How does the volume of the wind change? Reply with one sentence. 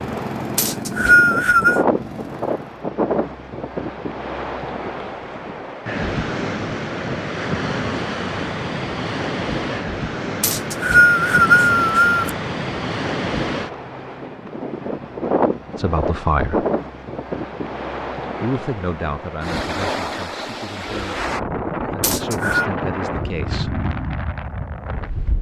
The loudness of the wind stays about the same.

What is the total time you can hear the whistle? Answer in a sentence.
You can hear the whistle for 4 seconds altogether.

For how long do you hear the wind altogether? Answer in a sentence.
You can hear the wind for 25 seconds altogether.